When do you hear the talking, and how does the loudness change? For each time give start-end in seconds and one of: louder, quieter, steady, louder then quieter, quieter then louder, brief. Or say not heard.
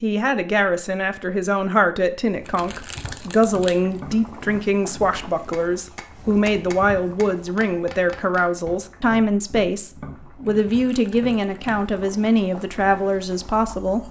0.0-14.0 steady.